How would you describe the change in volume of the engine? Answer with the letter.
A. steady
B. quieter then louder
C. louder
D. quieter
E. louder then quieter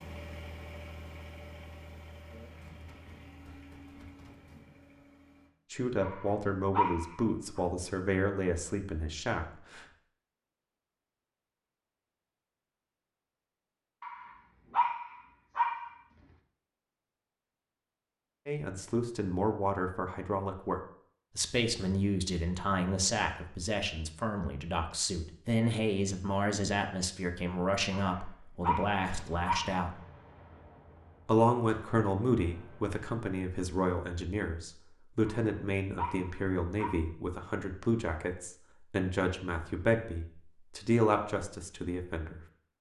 D.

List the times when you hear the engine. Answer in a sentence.
The engine can be heard from 0.0 to 5.5 s.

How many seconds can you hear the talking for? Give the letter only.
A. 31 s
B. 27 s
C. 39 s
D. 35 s
B.